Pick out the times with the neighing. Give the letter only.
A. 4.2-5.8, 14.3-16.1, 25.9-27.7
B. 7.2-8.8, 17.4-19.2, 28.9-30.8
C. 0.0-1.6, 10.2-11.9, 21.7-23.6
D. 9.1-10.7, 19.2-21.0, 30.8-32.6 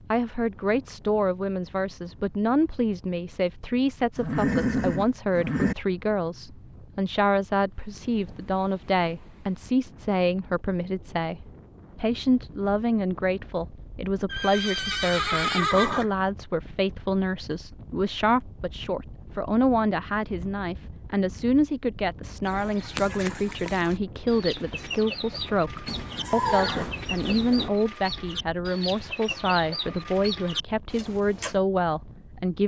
A.